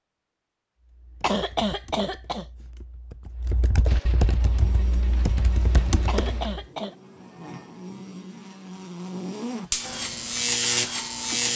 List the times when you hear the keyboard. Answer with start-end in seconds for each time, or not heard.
0.8-6.5.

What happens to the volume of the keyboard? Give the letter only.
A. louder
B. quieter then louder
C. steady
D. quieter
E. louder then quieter
A.